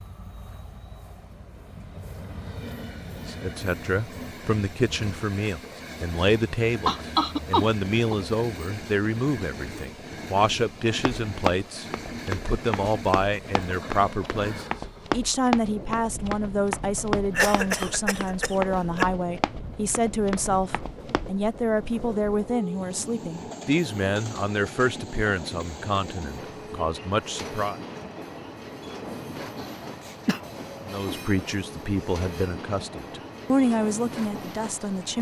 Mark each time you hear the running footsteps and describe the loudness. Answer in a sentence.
The running footsteps can be heard from 10.9 to 21.3 s, at a steady volume.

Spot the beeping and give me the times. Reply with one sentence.
The beeping can't be heard in this clip.